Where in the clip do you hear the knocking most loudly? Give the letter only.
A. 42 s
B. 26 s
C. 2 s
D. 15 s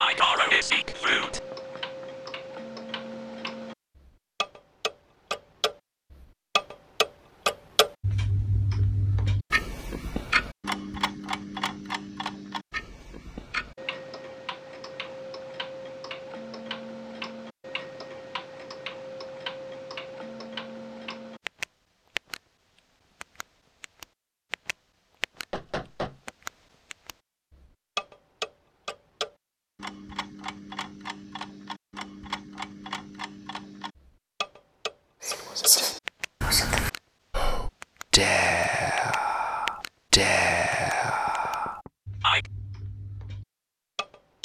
B.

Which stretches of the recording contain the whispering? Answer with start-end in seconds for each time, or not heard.
0.0-1.4, 35.2-42.5.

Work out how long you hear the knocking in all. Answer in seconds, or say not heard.
2 s.